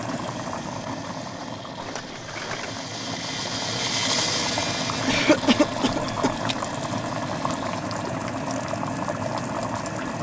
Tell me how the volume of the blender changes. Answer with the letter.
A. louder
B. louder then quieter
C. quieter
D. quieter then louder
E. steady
B.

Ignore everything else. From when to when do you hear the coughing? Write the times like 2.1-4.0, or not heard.
5.0-6.3.